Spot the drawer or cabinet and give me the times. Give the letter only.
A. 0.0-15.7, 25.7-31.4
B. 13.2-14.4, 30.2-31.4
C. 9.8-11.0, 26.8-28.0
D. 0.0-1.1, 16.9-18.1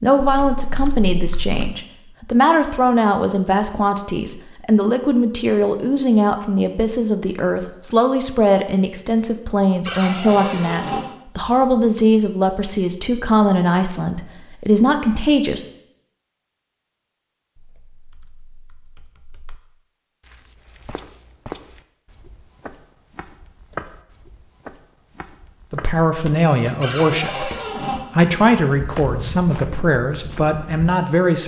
C.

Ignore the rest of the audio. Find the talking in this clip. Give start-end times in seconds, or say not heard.
0.0-15.7, 25.7-31.4.